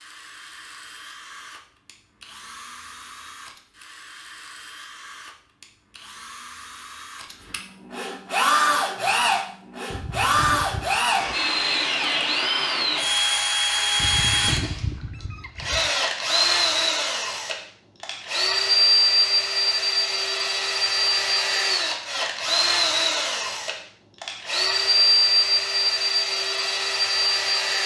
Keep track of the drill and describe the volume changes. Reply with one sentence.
The volume of the drill goes up.